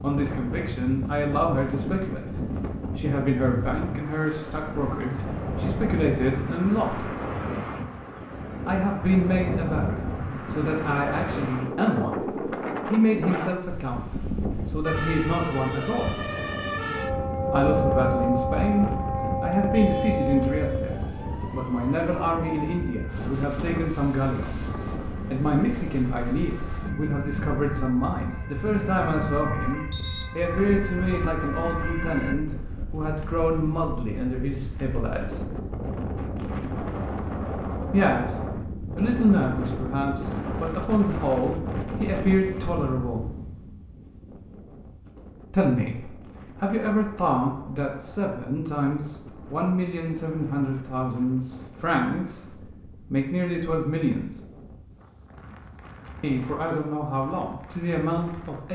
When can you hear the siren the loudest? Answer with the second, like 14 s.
18 s.